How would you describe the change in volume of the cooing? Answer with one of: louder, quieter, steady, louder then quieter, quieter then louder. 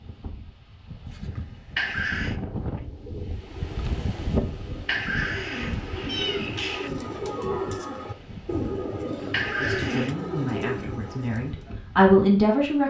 louder.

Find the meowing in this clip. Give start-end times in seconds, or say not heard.
1.8-2.4, 4.8-6.9, 9.3-10.2.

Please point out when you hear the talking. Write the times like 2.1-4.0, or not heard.
9.6-12.8.